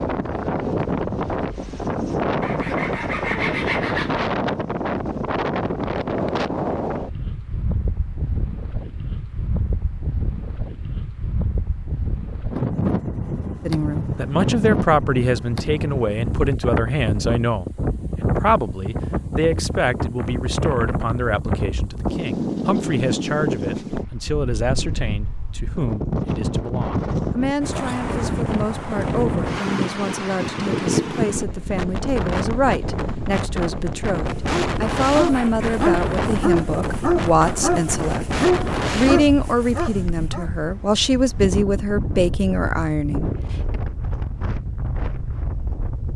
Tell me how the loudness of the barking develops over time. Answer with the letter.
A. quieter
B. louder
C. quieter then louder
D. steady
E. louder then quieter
D.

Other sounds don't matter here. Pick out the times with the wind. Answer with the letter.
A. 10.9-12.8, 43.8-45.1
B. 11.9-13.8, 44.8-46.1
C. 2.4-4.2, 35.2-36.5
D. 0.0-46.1
D.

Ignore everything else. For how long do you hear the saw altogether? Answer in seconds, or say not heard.
3 s.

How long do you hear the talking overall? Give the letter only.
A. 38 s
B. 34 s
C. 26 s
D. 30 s
D.